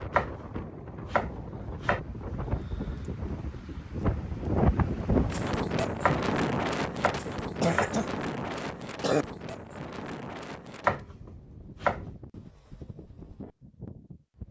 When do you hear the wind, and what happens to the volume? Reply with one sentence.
The wind can be heard from 0.0 to 14.4 s, getting louder then quieter.